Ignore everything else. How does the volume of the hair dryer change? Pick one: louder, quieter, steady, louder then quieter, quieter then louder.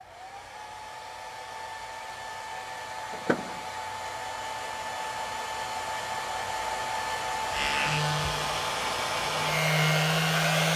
louder.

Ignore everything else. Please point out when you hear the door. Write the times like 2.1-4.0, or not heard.
3.1-3.6.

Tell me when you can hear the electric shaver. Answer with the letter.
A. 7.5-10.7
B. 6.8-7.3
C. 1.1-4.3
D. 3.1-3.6
A.